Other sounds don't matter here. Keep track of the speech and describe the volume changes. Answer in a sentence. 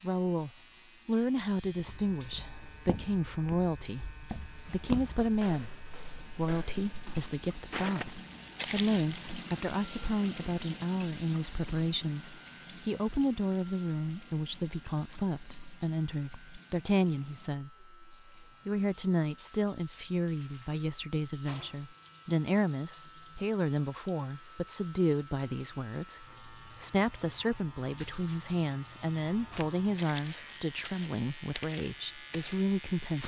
The loudness of the speech stays about the same.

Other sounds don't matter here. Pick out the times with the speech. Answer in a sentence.
The speech can be heard from 0.0 to 33.2 s.